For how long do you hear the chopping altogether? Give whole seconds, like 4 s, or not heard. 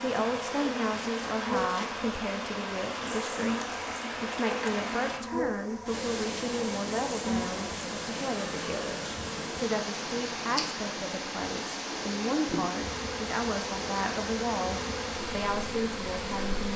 not heard.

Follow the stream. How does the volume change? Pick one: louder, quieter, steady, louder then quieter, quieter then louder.
steady.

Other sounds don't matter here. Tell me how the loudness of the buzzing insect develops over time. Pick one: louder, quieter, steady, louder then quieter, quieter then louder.
steady.